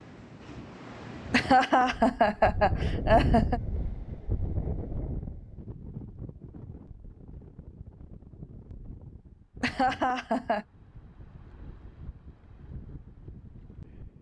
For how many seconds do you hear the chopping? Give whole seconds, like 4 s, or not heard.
not heard.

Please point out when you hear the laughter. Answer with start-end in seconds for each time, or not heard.
1.3-3.6, 9.6-10.7.